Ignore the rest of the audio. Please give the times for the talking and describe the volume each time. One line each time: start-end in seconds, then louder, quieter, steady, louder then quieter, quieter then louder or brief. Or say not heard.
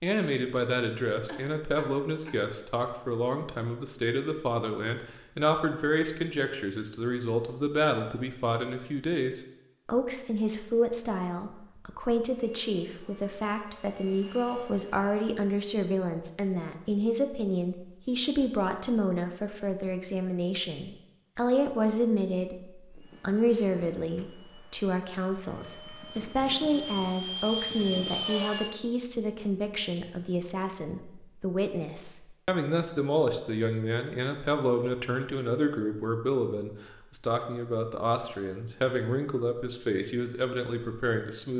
0.0-41.5 steady.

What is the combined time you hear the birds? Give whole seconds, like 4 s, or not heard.
not heard.